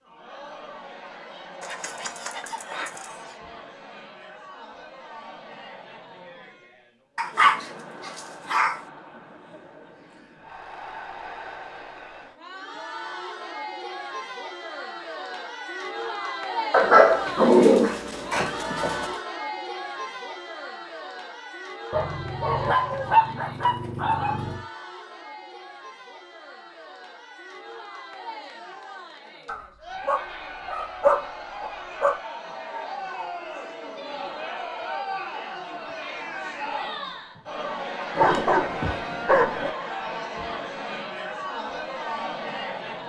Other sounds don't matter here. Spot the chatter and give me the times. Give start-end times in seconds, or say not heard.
0.0-43.0.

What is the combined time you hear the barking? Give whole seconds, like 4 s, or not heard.
13 s.